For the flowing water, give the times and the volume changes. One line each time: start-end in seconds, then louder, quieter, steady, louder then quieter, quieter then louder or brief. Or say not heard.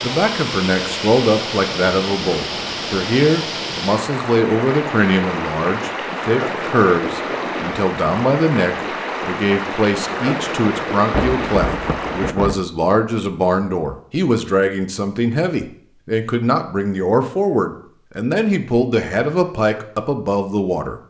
0.0-12.3 steady.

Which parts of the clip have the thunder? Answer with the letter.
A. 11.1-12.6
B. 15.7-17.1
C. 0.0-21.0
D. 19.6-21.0
A.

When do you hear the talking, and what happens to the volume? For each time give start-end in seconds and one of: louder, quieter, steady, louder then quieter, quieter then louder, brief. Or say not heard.
0.0-21.0 steady.